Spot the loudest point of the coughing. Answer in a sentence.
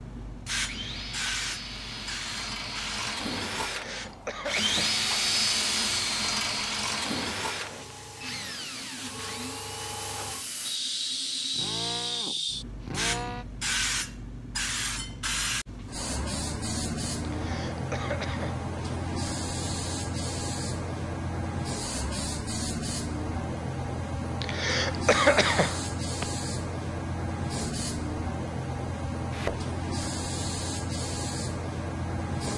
The loudest moment of the coughing is at 25 seconds.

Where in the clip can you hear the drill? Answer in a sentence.
The drill can be heard from 0.0 to 13.4 s.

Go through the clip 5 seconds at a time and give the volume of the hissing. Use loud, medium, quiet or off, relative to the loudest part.
medium, medium, loud, loud, loud, loud, loud.